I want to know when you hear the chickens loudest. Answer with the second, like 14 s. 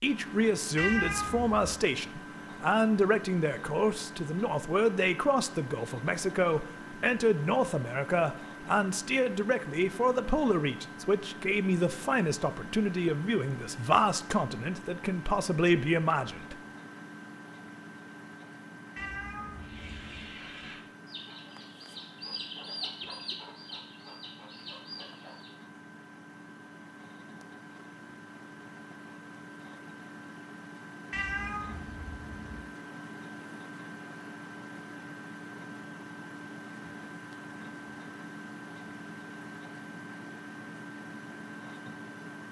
23 s.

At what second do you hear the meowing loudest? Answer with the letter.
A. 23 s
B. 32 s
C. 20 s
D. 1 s
D.